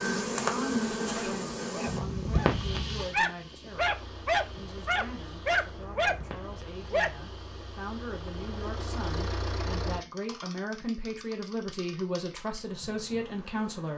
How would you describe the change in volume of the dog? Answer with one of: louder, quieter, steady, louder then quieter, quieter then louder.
louder.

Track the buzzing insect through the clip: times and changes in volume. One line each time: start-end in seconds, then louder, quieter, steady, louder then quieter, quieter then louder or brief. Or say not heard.
0.0-13.9 quieter.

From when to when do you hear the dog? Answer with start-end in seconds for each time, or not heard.
1.1-7.1.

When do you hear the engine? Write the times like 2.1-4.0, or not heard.
3.6-10.1.